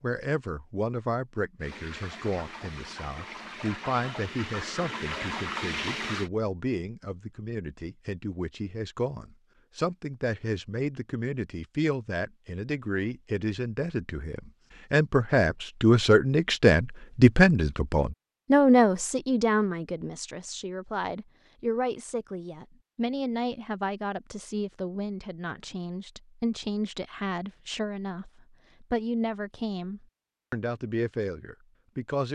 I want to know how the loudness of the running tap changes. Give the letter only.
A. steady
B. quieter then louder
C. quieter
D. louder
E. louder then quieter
D.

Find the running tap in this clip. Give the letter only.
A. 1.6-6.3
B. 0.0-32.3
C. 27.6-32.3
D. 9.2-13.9
A.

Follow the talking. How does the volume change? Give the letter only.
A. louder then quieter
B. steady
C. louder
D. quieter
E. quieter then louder
A.